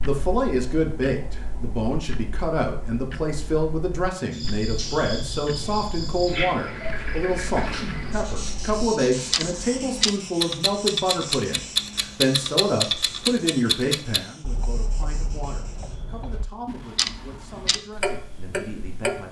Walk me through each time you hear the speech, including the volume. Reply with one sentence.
The speech can be heard from 0.0 to 19.2 s, getting quieter.